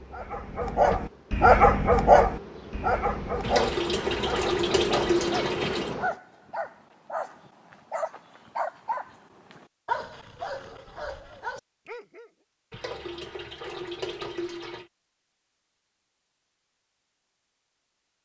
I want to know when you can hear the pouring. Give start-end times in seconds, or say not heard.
3.4-6.0, 12.7-14.9.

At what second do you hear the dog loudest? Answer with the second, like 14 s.
2 s.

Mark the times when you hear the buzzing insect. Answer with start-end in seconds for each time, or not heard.
0.0-6.2.